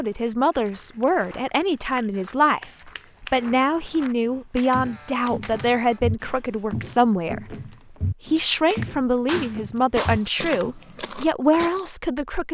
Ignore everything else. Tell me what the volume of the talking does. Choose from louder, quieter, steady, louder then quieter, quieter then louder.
steady.